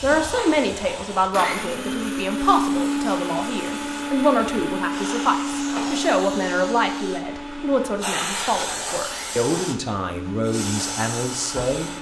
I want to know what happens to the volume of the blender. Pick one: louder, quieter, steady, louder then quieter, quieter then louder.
quieter.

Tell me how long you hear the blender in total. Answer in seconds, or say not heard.
12 s.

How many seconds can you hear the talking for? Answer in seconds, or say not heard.
12 s.